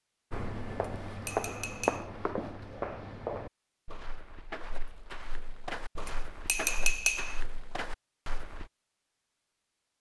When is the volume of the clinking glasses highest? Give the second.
7 s.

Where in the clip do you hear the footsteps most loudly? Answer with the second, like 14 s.
2 s.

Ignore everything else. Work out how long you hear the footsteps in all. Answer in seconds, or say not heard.
8 s.